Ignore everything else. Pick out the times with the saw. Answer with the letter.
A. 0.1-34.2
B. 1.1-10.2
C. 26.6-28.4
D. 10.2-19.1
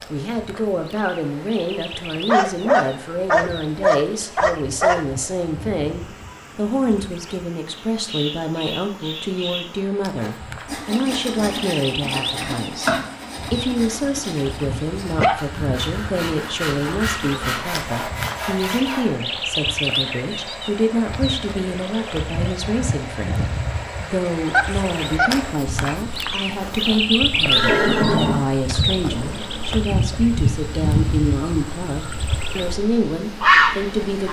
D.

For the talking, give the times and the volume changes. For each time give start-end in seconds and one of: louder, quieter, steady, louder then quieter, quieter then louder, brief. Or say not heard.
0.1-34.2 steady.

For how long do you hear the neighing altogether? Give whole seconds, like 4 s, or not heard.
2 s.